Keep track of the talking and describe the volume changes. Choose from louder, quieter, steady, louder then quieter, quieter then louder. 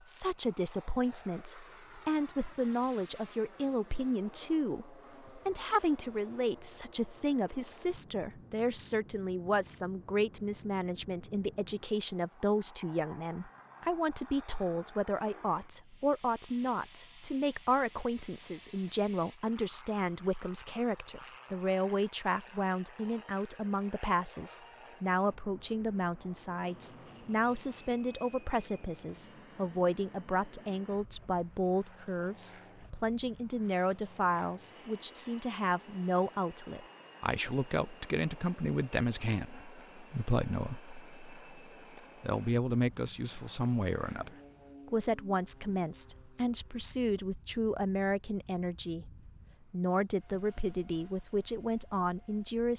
steady.